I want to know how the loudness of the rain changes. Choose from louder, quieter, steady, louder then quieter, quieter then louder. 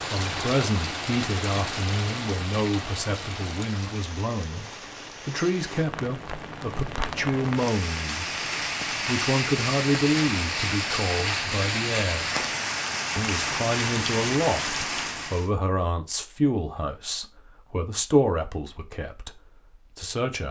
quieter then louder.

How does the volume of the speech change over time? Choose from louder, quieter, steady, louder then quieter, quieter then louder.
steady.